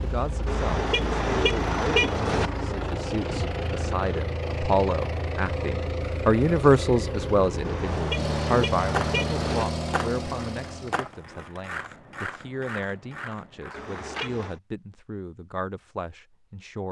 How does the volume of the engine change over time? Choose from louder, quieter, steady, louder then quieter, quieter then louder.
steady.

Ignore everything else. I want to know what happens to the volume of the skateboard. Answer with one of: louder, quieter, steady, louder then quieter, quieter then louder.
quieter.